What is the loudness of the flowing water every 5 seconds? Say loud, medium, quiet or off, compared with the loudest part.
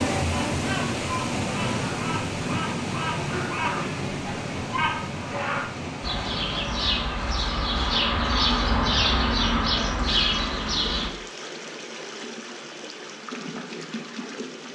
loud, medium, medium.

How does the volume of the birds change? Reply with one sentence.
The loudness of the birds goes up.